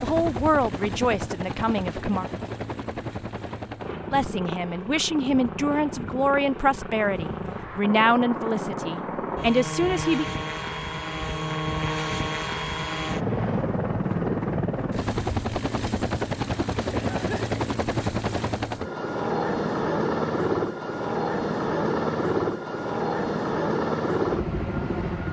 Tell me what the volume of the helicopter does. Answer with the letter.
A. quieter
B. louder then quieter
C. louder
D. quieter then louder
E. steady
C.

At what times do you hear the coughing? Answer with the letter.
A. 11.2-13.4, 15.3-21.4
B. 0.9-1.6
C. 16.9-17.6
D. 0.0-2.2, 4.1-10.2
C.